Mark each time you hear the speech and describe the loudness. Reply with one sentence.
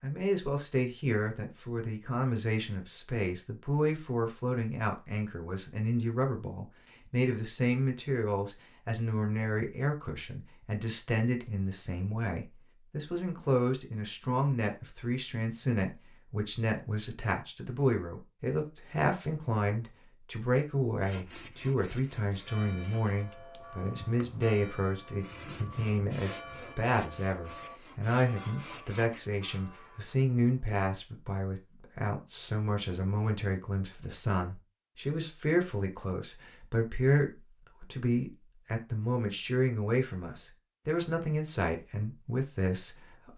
The speech can be heard from 0.0 to 43.3 s, at a steady volume.